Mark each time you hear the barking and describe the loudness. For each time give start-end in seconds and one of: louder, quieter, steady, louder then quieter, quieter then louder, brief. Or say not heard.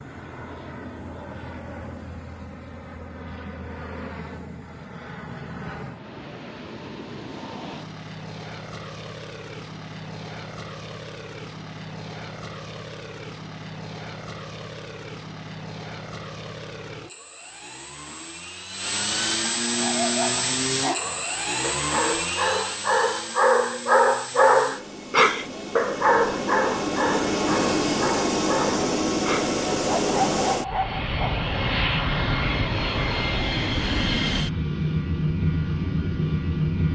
19.6-31.4 louder then quieter.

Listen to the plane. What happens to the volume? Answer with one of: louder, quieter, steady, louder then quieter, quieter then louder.
louder.